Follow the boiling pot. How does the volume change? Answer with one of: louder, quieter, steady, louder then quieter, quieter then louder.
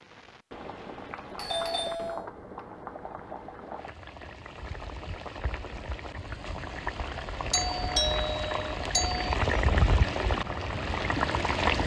louder.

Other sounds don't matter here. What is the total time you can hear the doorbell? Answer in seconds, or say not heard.
3 s.